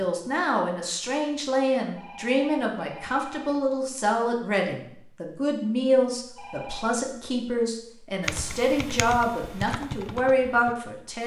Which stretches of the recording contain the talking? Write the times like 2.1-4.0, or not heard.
0.0-11.2.